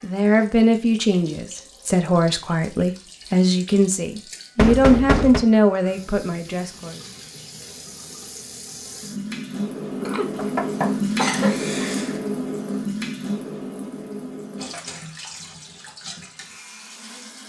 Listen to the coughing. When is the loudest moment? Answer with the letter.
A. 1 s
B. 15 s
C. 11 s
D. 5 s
C.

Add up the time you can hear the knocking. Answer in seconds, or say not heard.
3 s.